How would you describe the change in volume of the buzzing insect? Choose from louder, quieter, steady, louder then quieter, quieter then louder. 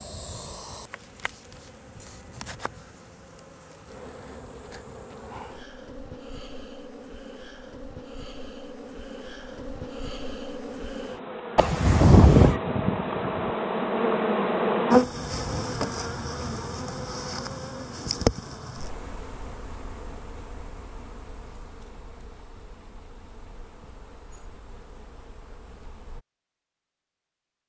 louder then quieter.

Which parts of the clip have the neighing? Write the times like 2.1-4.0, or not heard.
11.6-12.6.